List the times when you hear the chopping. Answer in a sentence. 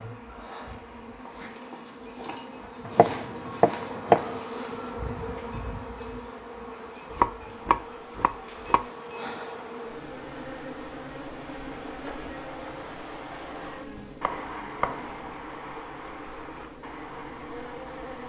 The chopping can be heard from 2.9 to 4.4 s, from 7.1 to 8.8 s and from 14.1 to 15.3 s.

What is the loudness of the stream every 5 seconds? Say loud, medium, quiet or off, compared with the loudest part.
quiet, medium, loud, loud.